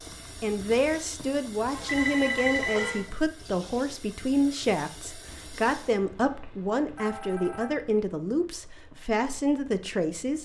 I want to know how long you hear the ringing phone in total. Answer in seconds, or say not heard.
4 s.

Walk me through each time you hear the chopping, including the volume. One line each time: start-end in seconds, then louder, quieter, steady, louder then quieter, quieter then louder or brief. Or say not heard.
not heard.